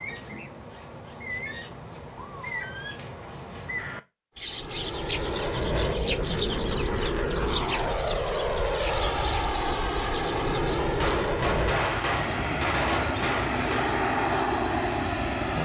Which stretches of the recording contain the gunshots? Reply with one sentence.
You can hear the gunshots from 11.0 to 13.9 s.